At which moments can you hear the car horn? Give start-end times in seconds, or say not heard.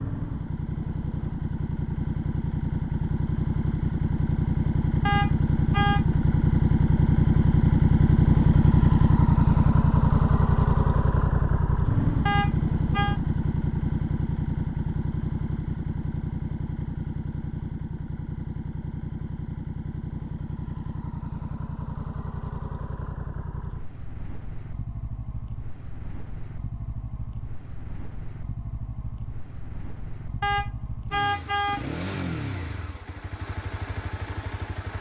5.0-6.0, 12.2-13.2, 30.4-31.9.